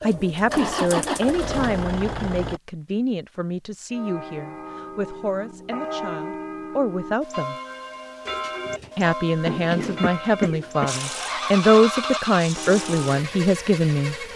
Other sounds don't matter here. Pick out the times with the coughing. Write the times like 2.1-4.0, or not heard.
9.8-10.9.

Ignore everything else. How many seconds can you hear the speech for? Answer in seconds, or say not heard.
13 s.